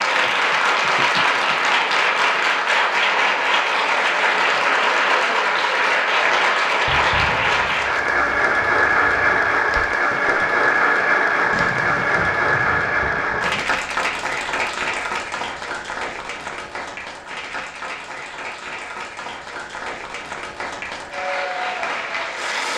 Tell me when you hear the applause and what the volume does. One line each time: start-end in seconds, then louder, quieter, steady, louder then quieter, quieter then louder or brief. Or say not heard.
0.0-22.7 quieter.